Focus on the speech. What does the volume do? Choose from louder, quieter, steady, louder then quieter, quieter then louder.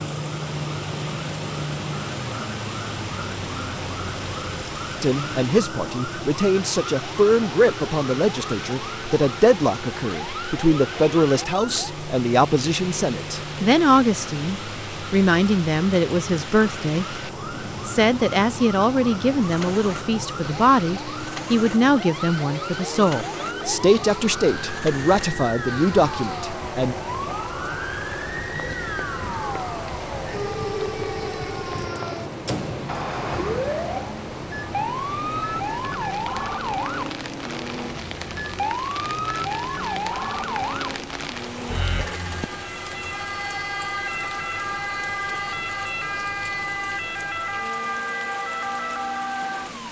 steady.